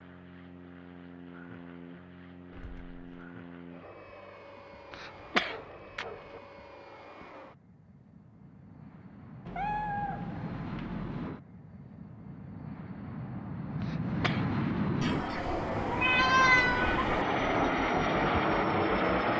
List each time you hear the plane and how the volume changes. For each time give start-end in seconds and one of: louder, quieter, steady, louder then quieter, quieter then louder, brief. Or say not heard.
0.0-19.3 louder.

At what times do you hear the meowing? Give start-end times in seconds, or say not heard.
2.5-3.0, 9.4-11.3, 15.0-17.2.